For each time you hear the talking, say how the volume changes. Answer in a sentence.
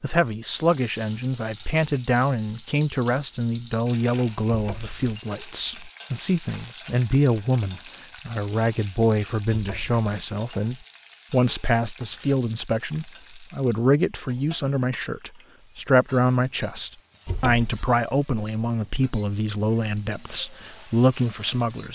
You can hear the talking from 0.0 to 21.9 s, at a steady volume.